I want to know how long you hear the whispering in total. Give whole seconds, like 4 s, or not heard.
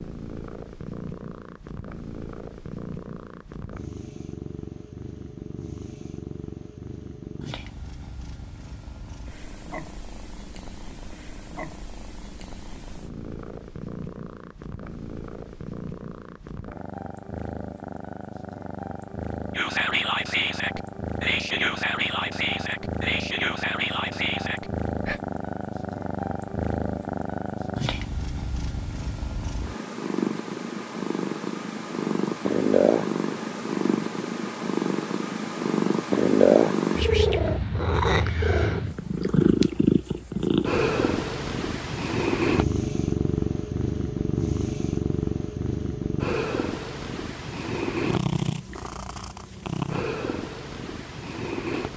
6 s.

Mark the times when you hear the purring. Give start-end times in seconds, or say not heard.
0.0-51.9.